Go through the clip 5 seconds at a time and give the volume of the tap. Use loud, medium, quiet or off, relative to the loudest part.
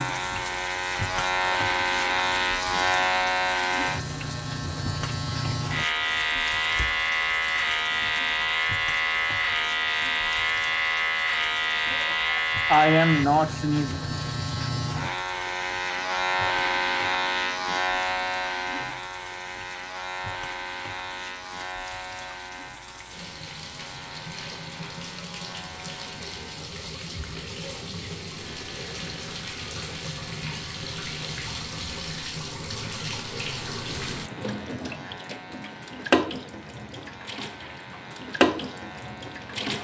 medium, quiet, quiet, quiet, quiet, medium, medium, loud.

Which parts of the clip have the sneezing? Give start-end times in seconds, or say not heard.
11.9-14.0.